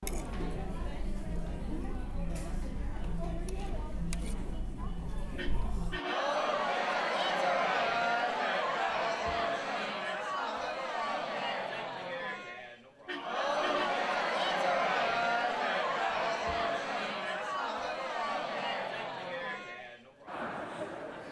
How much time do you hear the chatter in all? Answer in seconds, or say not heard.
21 s.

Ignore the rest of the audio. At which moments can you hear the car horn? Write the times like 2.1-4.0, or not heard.
5.3-6.3, 13.1-14.1.